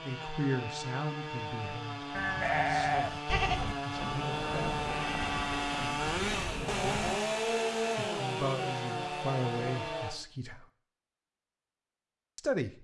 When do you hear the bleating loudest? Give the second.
3 s.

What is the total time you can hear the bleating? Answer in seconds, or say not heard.
5 s.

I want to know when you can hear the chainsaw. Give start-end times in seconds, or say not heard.
0.0-10.2.